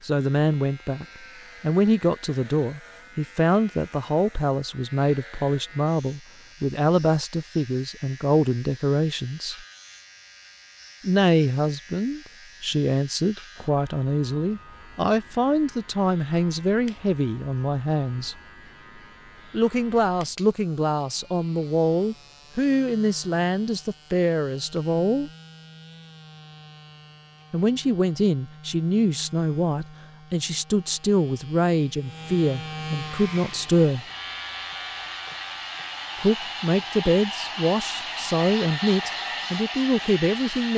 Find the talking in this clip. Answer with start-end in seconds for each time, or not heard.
0.0-9.6, 11.0-18.4, 19.5-25.3, 27.5-34.0, 36.2-40.7.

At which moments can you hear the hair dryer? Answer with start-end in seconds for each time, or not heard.
33.0-40.7.